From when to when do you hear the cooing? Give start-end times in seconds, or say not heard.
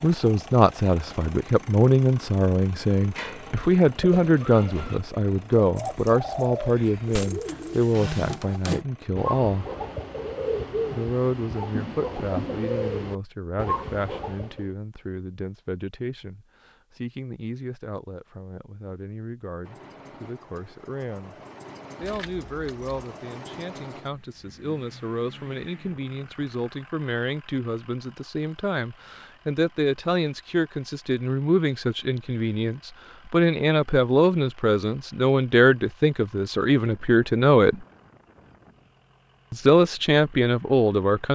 3.0-14.7.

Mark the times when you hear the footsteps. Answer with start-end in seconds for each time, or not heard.
not heard.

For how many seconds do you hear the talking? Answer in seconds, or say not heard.
38 s.